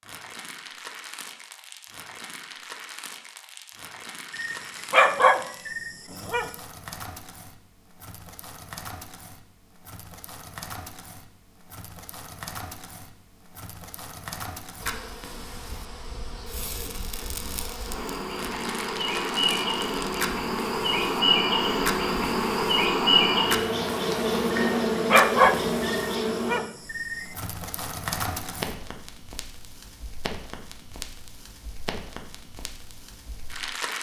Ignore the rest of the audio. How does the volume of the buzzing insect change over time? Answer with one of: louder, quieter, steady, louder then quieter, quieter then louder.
louder.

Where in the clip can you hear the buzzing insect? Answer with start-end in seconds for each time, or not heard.
14.8-26.6.